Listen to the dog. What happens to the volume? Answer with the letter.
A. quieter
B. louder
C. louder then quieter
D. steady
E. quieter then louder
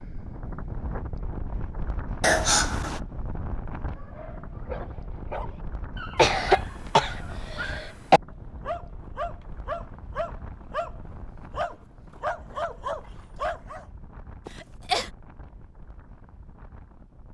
B.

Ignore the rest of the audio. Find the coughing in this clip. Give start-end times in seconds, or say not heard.
2.2-3.0, 6.2-8.2, 14.4-15.1.